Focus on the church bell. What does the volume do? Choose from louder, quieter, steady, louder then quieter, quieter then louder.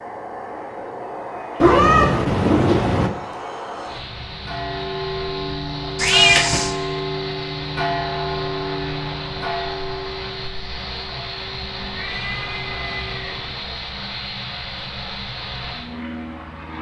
quieter.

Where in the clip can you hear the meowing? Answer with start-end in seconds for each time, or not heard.
1.6-3.1, 6.0-6.8, 11.8-13.4.